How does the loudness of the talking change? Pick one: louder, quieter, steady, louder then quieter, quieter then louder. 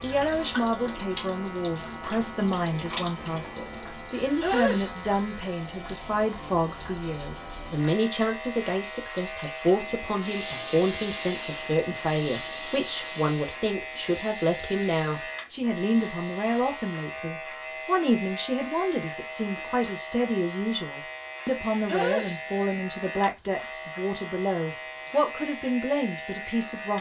steady.